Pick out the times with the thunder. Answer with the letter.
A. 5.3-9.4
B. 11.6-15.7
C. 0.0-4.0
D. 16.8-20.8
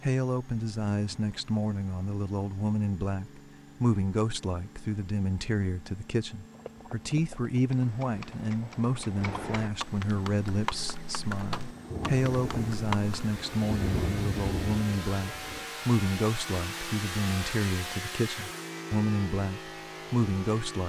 B.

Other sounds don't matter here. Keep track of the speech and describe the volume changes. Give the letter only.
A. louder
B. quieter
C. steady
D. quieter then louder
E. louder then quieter
C.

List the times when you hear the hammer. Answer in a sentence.
The hammer can't be heard in this clip.